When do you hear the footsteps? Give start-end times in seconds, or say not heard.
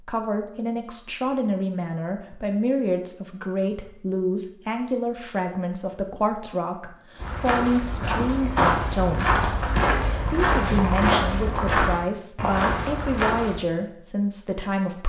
7.2-13.6.